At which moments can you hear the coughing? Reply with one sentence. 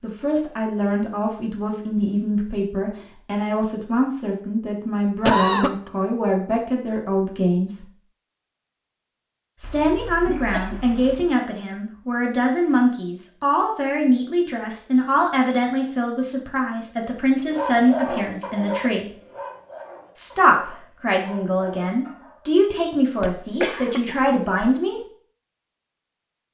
The coughing can be heard from 5.2 to 5.9 s, from 9.6 to 11.3 s and from 23.1 to 24.7 s.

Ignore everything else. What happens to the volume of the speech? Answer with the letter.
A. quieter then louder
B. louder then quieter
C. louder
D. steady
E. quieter
D.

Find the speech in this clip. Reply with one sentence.
You can hear the speech from 0.0 to 7.8 s, from 9.6 to 19.1 s and from 20.1 to 25.0 s.